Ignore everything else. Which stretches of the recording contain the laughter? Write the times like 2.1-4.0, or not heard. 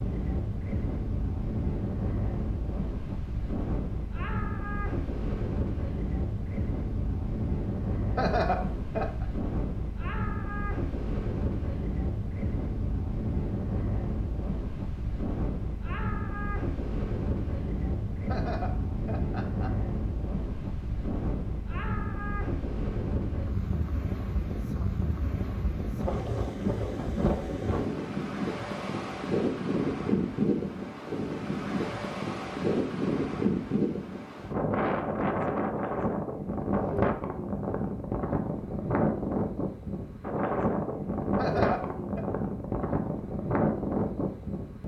8.2-9.2, 18.2-19.8, 41.4-42.2.